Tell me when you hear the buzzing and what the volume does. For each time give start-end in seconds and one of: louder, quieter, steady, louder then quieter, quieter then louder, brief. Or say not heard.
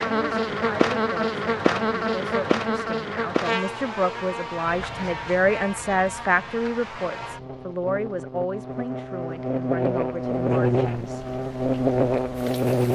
0.0-12.9 quieter then louder.